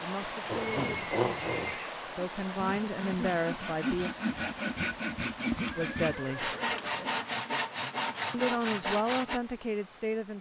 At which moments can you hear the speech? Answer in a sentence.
The speech can be heard from 0.0 to 4.1 s, from 5.8 to 6.5 s and from 8.3 to 10.3 s.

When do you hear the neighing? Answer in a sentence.
The neighing can be heard from 0.7 to 2.0 s and from 5.7 to 7.2 s.